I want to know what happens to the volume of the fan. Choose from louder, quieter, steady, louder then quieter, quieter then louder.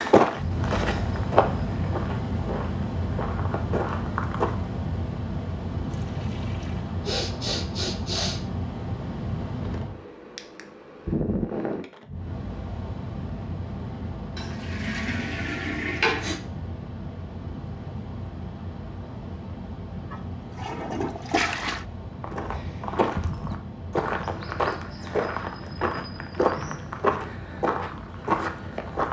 quieter.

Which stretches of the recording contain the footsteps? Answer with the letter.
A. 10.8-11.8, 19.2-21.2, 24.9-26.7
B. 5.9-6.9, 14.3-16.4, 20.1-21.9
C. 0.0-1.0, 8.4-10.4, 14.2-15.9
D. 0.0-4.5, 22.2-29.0
D.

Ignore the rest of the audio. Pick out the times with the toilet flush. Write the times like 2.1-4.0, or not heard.
5.9-6.9, 14.3-16.4, 20.1-21.9.